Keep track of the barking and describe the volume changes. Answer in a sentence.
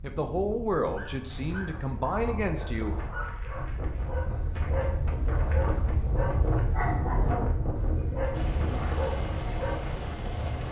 The loudness of the barking goes up.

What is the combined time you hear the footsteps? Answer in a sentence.
You can't hear the footsteps here.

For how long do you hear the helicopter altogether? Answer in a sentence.
You can hear the helicopter for 2 seconds altogether.